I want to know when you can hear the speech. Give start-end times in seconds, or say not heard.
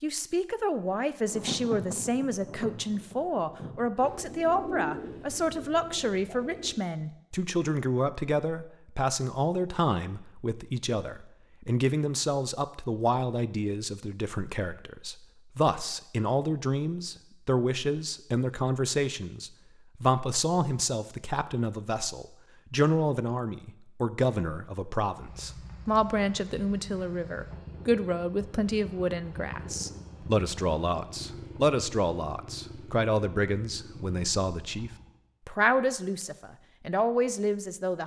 0.0-38.0.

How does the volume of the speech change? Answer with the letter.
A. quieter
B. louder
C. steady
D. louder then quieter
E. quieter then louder
C.